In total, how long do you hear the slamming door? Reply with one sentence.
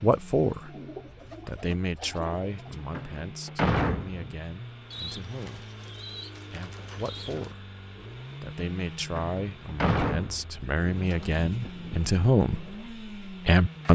The slamming door can be heard for 3 seconds in total.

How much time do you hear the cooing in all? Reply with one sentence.
You can hear the cooing for 6 seconds altogether.